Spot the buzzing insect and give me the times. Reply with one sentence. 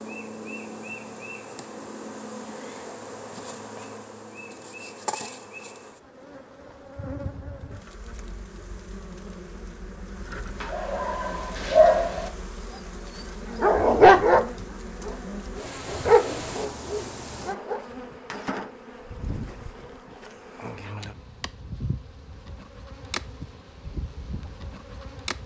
The buzzing insect can be heard from 0.0 to 25.4 s.